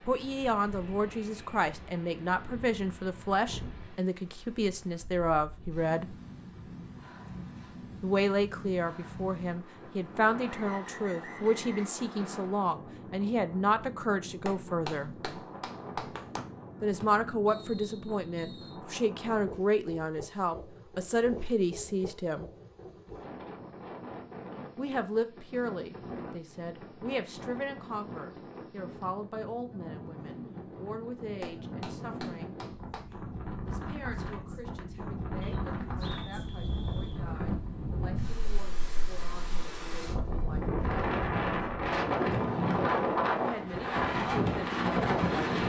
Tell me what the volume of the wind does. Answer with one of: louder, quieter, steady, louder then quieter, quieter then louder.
louder.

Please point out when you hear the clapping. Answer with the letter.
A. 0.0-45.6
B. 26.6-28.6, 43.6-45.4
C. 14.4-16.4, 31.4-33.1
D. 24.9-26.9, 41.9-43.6
C.